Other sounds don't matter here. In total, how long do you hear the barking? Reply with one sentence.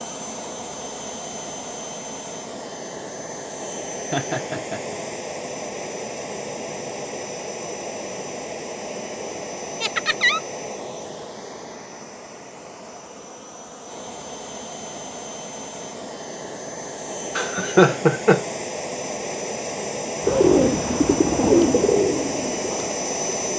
You can't hear the barking here.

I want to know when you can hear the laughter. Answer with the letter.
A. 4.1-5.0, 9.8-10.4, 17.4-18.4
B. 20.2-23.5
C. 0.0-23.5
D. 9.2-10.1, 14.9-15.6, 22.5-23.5
A.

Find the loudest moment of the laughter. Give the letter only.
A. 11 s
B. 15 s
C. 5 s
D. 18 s
D.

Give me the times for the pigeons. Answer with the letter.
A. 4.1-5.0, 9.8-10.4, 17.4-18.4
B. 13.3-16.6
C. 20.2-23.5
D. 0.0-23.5
C.